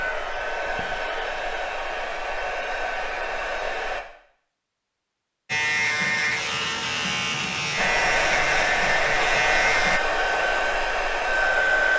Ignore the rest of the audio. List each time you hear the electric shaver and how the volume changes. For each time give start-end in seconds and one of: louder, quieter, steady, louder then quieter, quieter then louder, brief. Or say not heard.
5.5-10.0 steady.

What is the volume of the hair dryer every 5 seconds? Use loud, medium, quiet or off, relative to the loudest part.
medium, loud, loud.